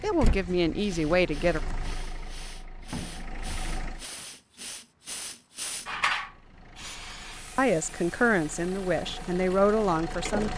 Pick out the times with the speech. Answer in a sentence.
The speech can be heard from 0.0 to 1.6 s and from 7.5 to 10.5 s.